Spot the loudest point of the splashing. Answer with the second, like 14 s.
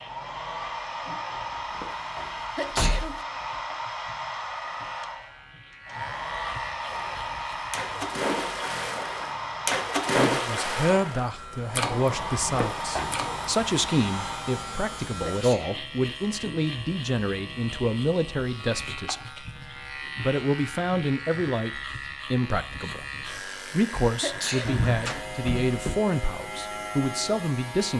10 s.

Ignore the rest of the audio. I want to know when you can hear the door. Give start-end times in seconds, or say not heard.
1.3-3.2, 12.1-13.2, 24.6-26.0.